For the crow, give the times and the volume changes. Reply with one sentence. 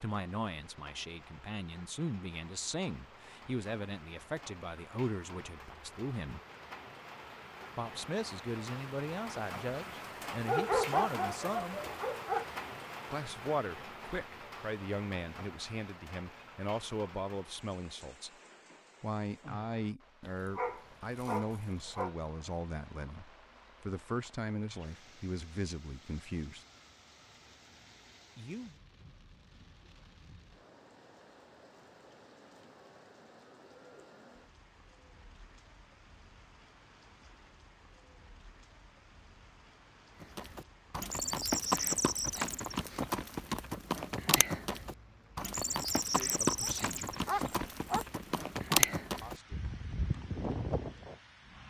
The crow can't be heard in this clip.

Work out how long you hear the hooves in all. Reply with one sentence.
The hooves can be heard for 11 seconds in total.